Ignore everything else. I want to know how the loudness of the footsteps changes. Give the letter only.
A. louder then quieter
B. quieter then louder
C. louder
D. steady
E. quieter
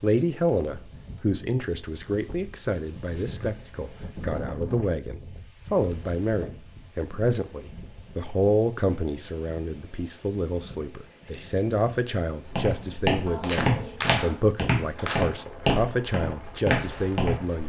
D.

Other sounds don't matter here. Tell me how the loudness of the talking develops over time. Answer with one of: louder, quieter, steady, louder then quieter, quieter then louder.
steady.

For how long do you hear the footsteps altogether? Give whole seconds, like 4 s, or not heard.
5 s.